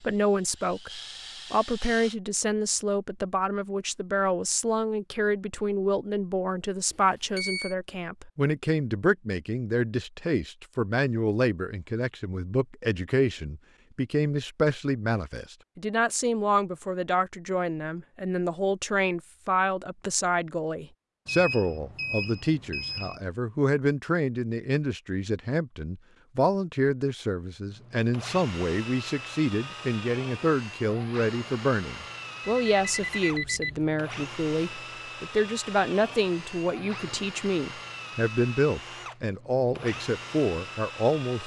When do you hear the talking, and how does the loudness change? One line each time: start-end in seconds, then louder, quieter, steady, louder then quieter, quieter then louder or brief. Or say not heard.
0.0-41.4 steady.